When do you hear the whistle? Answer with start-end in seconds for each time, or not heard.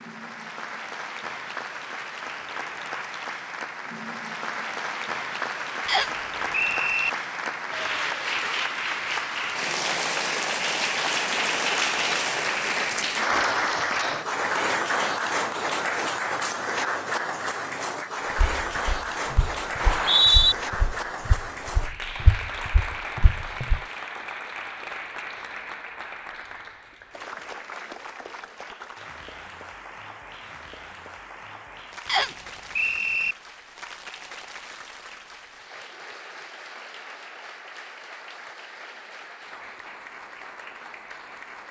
5.8-7.1, 19.8-20.6, 32.0-33.4.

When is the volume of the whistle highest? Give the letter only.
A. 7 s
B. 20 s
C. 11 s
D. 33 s
B.